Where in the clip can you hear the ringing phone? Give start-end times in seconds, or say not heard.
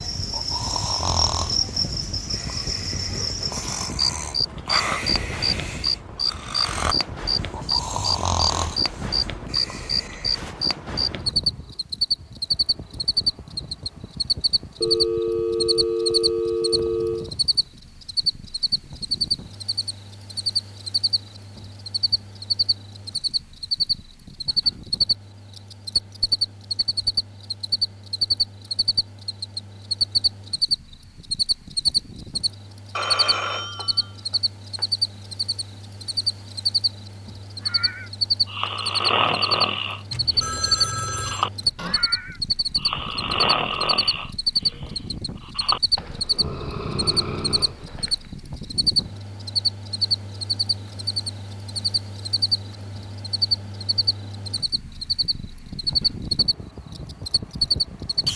14.8-17.3, 33.0-34.9, 40.1-41.5.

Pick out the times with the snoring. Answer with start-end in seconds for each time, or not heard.
0.2-10.4, 37.6-48.2.